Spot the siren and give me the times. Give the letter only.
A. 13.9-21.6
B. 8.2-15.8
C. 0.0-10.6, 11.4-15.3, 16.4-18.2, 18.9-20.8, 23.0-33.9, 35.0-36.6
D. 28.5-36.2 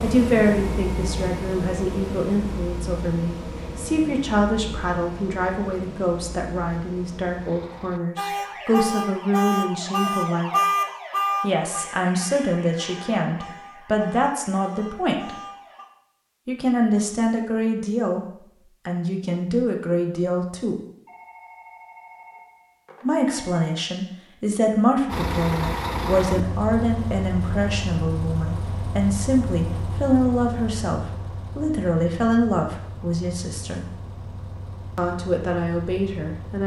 B.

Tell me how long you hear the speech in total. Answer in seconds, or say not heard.
31 s.